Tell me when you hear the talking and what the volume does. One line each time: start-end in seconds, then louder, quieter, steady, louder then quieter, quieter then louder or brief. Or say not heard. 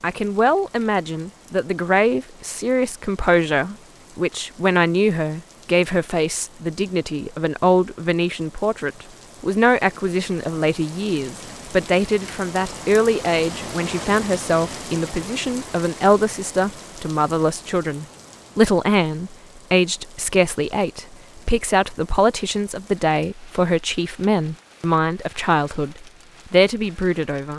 0.0-27.5 steady.